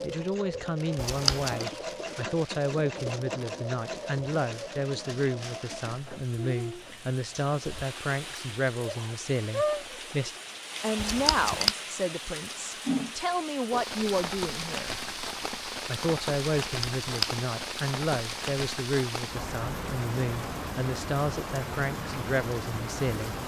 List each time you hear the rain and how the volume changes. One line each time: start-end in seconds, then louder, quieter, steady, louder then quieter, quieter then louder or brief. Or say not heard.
0.0-23.4 louder.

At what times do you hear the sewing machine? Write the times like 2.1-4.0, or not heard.
0.0-10.3.